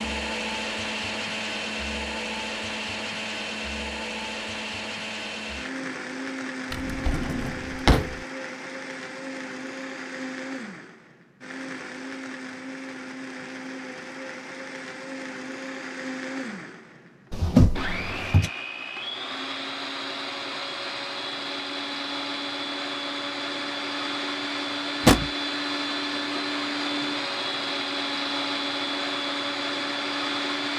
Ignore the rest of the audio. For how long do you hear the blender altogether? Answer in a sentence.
The blender can be heard for 31 seconds in total.